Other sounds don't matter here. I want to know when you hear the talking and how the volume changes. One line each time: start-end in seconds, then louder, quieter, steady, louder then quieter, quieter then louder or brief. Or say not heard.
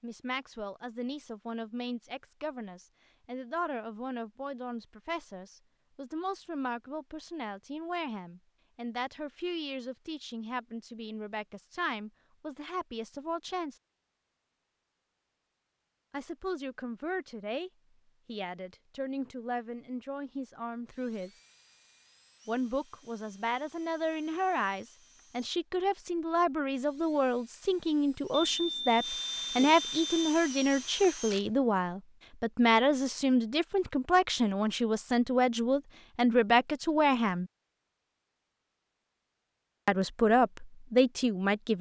0.0-13.8 steady
16.1-21.4 steady
22.4-37.5 louder
39.9-41.7 brief.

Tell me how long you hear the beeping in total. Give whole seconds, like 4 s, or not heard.
2 s.